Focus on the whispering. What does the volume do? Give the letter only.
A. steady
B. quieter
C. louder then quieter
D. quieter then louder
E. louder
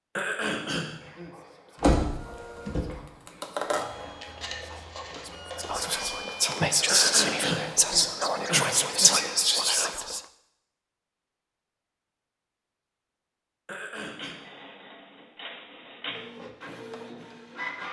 E.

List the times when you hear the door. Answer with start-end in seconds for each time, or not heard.
1.8-2.9.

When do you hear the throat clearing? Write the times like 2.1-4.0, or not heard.
0.1-1.3, 6.8-8.8, 13.7-14.4.